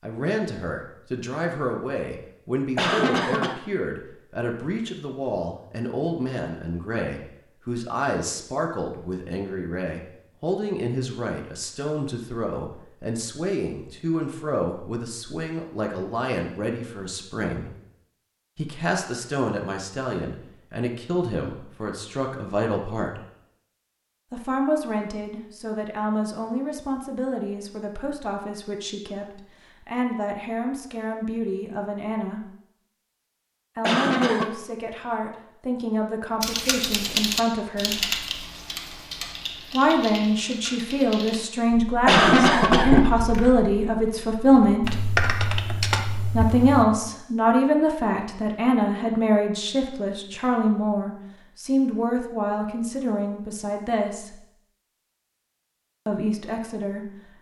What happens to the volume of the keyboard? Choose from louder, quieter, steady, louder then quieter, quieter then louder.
quieter then louder.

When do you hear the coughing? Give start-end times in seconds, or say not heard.
2.8-3.6, 33.8-34.5, 42.0-43.1.